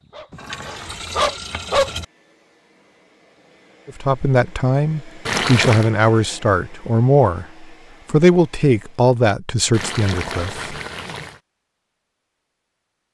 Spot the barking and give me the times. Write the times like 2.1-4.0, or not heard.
0.0-1.9.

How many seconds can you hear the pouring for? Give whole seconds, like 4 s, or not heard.
4 s.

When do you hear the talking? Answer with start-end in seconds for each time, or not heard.
3.9-10.8.